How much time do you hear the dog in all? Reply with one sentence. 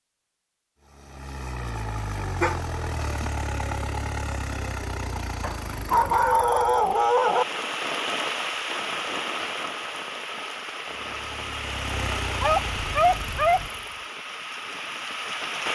The dog can be heard for 4 seconds in total.